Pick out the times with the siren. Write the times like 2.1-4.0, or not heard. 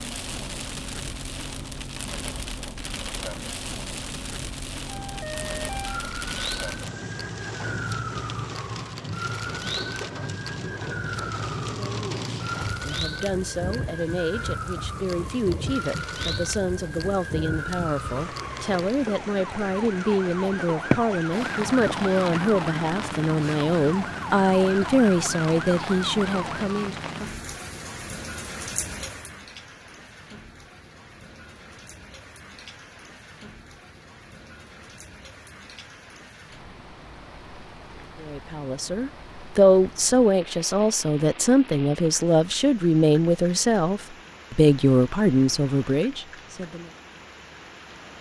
4.8-26.8.